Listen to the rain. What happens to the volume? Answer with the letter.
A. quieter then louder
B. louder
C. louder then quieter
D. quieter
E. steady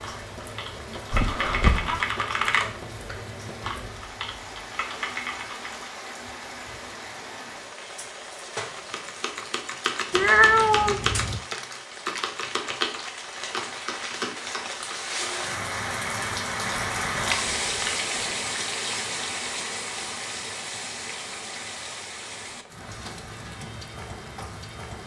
C.